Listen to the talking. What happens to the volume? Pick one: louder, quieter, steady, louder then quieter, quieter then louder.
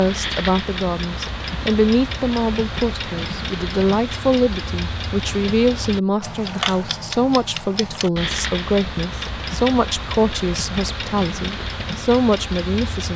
steady.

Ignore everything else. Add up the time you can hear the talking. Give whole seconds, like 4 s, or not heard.
13 s.